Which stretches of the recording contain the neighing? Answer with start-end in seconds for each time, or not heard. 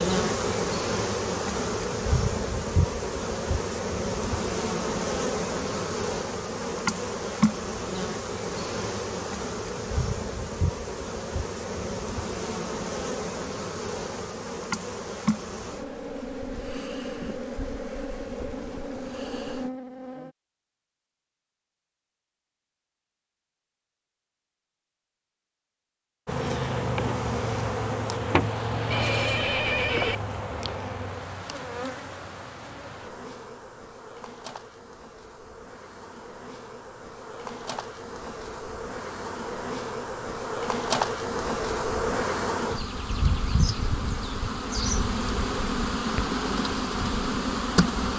28.9-30.1.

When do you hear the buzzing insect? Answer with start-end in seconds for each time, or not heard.
0.0-20.4, 26.2-48.1.